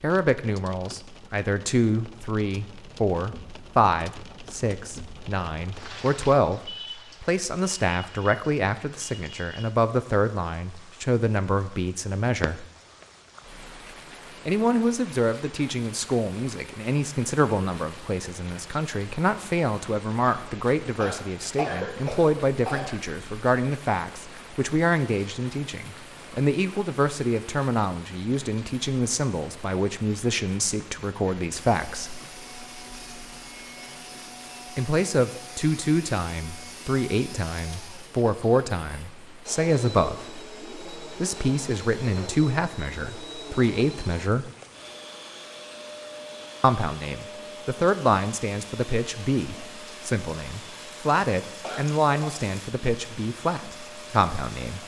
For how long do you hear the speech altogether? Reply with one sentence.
The speech can be heard for 48 seconds in total.